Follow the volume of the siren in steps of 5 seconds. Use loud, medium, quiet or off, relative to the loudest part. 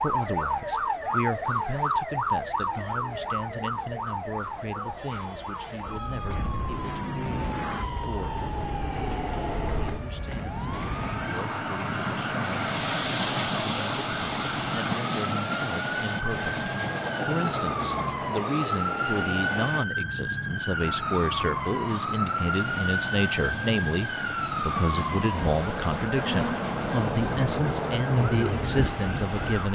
loud, medium, medium, loud, loud, loud.